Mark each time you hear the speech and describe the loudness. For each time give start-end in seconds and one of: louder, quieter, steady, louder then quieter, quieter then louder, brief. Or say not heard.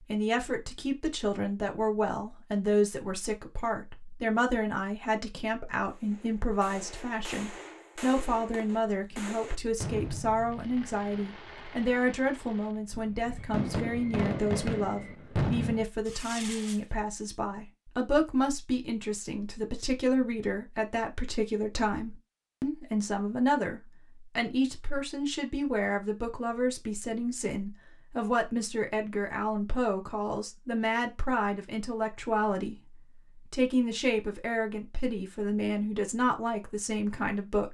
0.1-37.6 steady.